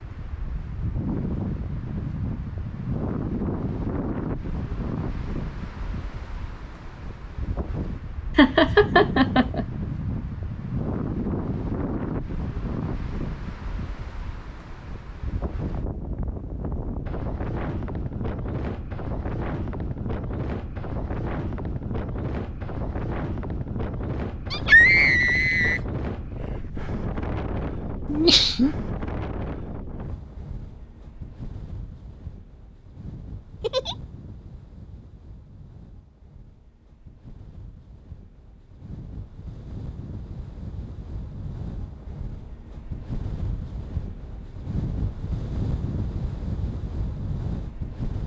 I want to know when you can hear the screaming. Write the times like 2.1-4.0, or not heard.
24.5-25.8.